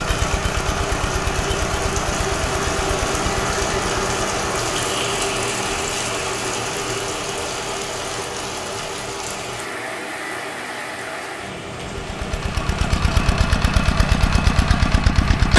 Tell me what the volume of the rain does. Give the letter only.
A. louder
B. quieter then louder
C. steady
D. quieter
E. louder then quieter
D.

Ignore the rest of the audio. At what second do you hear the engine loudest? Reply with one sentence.
The volume of the engine peaks at 15 seconds.